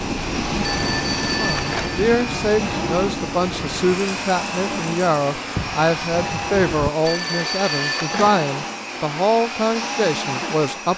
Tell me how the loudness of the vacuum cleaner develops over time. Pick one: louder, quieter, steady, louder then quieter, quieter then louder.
steady.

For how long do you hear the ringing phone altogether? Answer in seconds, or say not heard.
3 s.